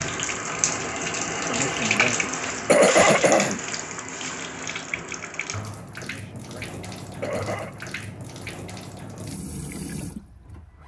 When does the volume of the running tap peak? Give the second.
2 s.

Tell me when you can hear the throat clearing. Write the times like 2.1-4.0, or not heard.
1.5-3.6, 6.0-7.8.